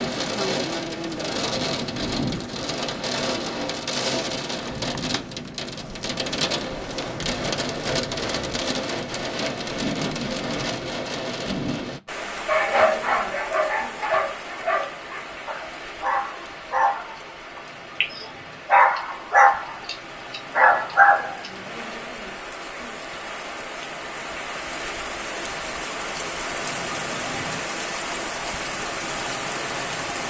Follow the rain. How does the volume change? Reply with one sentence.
The volume of the rain goes down, then up.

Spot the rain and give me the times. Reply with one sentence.
The rain can be heard from 0.0 to 30.2 s.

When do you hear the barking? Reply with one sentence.
The barking can be heard from 12.4 to 21.5 s.